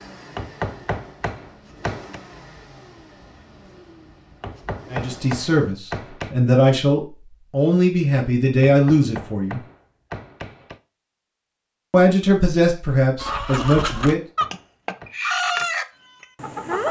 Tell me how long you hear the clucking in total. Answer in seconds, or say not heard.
4 s.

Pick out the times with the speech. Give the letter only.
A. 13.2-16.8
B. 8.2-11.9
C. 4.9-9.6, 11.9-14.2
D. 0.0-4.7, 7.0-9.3
C.